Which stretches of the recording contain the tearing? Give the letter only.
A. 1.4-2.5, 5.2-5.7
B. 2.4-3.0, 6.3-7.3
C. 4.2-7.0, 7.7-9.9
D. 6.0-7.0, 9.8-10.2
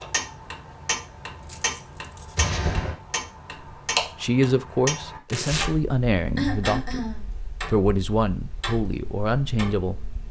A.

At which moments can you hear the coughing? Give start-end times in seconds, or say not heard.
2.4-3.0, 6.3-7.3.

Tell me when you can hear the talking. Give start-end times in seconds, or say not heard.
4.2-7.0, 7.7-9.9.